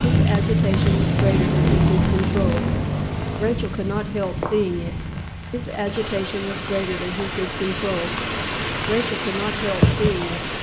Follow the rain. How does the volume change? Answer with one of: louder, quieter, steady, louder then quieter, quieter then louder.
quieter then louder.